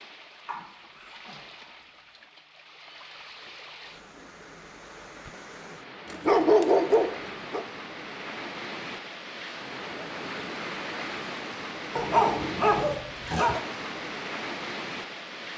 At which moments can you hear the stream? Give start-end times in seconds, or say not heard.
0.0-15.5.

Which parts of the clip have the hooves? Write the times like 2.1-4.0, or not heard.
not heard.